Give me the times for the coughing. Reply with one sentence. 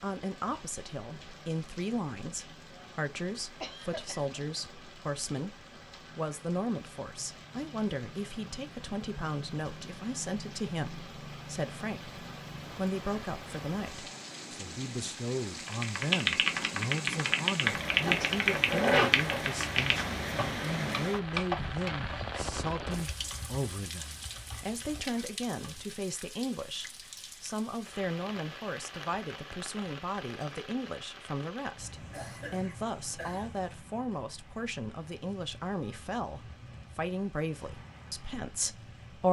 You can hear the coughing from 3.6 to 4.4 s and from 32.1 to 33.5 s.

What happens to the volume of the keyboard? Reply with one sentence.
The loudness of the keyboard goes down.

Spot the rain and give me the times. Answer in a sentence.
You can hear the rain from 0.0 to 39.2 s.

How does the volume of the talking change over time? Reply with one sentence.
The volume of the talking stays about the same.